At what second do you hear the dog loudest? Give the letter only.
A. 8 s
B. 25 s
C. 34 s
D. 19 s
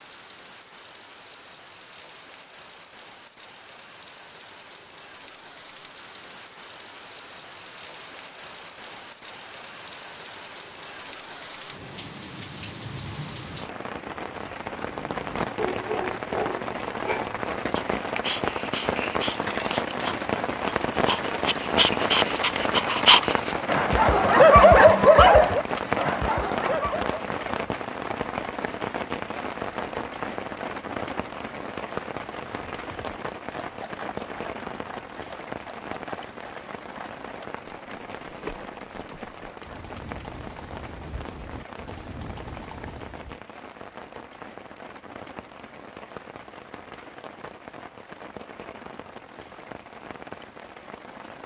B.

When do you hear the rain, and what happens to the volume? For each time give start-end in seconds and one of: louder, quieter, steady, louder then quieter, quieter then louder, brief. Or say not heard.
0.0-51.4 louder then quieter.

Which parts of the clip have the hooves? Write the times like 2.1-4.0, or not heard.
32.3-43.4.